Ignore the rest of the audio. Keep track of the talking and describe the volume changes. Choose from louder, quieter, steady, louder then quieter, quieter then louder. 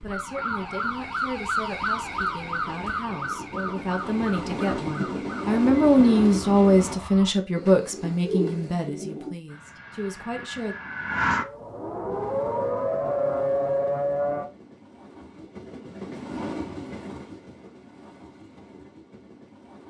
louder then quieter.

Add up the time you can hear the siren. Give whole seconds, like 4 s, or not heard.
12 s.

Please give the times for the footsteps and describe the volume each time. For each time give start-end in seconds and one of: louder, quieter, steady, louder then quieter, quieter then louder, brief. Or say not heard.
not heard.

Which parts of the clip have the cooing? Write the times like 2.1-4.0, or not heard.
7.5-9.3.